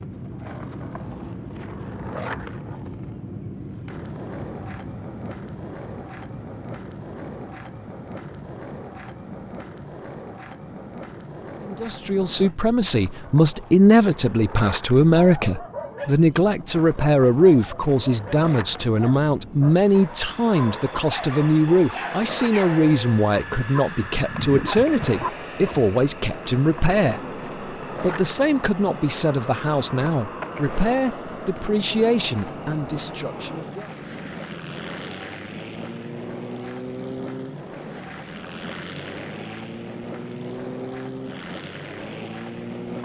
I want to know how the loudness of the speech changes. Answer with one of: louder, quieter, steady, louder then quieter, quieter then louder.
quieter.